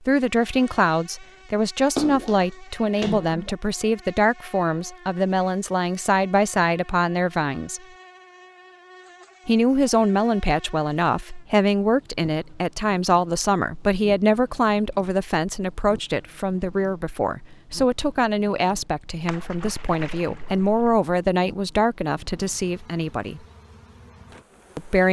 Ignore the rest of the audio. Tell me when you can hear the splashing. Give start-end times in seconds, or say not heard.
1.9-3.5, 19.2-21.0.